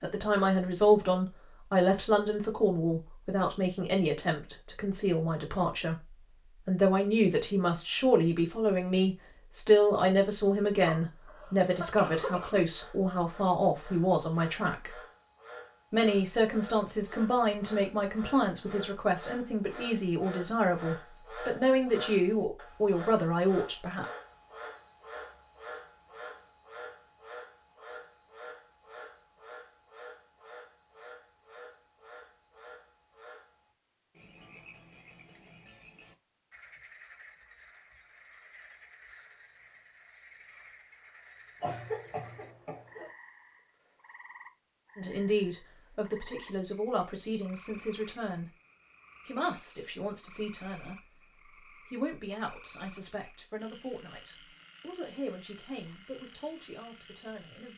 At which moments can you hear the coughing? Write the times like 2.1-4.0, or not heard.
10.8-12.7, 41.6-43.1.